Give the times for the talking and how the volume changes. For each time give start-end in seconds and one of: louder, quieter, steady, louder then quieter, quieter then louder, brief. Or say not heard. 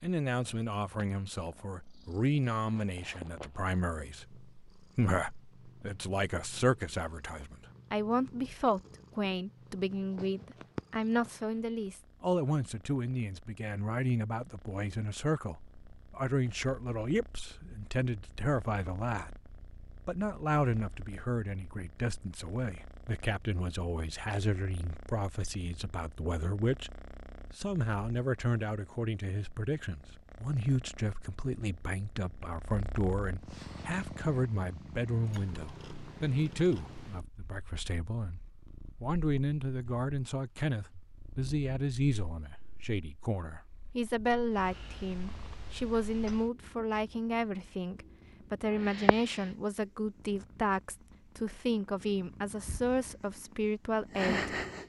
0.0-54.5 steady.